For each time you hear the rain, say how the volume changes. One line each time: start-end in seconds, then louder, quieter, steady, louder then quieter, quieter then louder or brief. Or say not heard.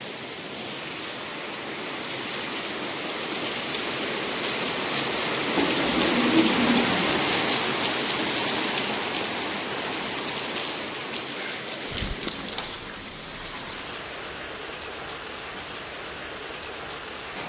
0.0-17.4 louder then quieter.